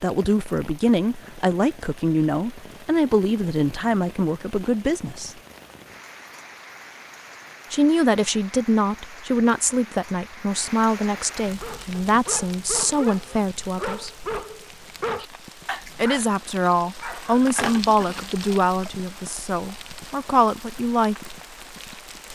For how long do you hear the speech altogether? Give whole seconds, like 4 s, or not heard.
17 s.